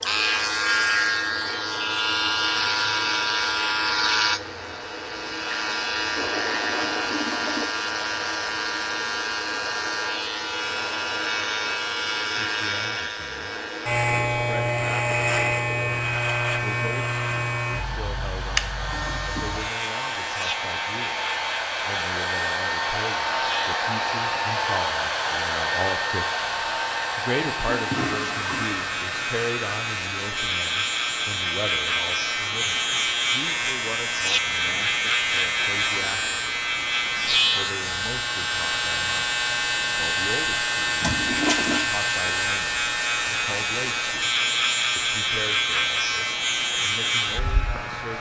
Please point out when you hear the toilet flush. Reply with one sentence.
The toilet flush can be heard from 6.2 to 7.7 s, from 27.6 to 28.8 s and from 41.0 to 41.9 s.